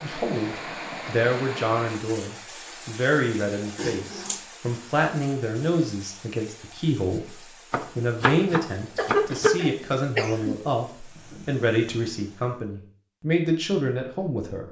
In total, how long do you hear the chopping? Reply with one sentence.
The chopping can be heard for 2 seconds in total.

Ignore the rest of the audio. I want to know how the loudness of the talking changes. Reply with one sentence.
The volume of the talking stays about the same.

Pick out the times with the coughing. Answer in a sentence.
The coughing can be heard from 3.8 to 4.4 s and from 8.9 to 10.6 s.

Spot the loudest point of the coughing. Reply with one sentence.
The loudest moment of the coughing is at 9 seconds.